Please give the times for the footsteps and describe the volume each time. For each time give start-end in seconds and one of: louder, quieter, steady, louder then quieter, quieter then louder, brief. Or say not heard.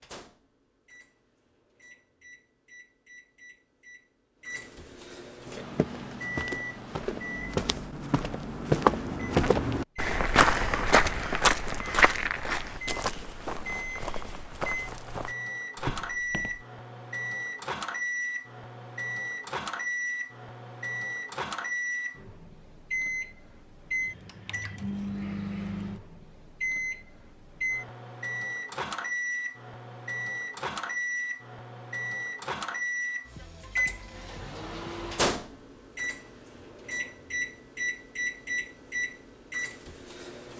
5.5-16.6 louder then quieter.